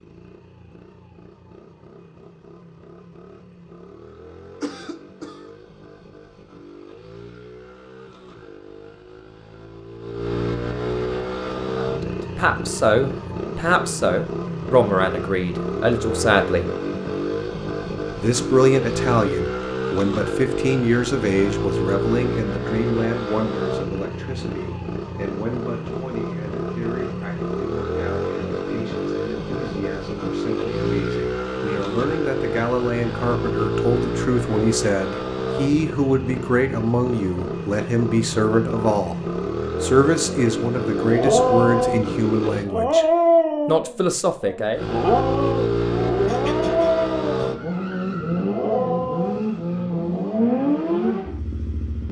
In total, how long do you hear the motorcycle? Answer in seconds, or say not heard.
50 s.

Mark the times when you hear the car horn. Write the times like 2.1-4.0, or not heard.
not heard.